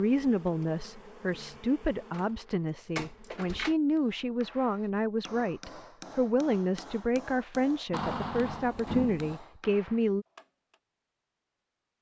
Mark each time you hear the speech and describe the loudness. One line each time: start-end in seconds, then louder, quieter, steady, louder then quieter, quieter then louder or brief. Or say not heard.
0.0-10.2 steady.